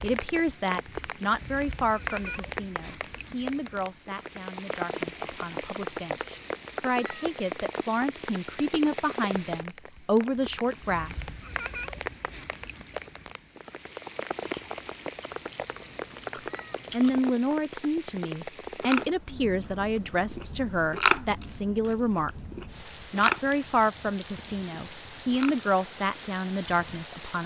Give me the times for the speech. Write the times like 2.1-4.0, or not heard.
0.0-11.2, 16.9-22.3, 23.1-27.4.